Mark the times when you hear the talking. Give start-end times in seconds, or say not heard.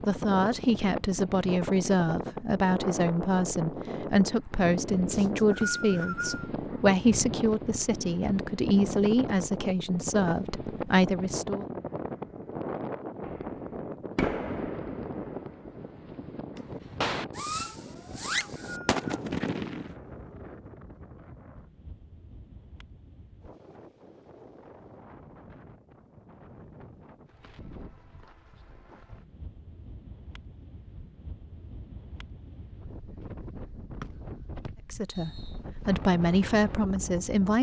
0.0-11.7, 34.9-37.5.